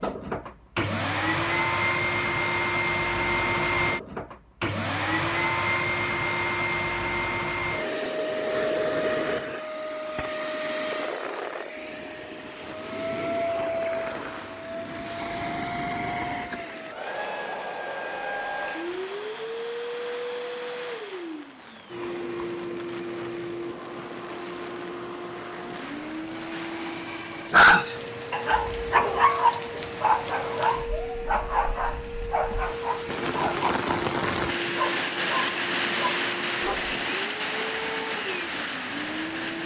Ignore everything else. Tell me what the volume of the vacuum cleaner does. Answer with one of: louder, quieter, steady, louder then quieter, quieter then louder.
quieter.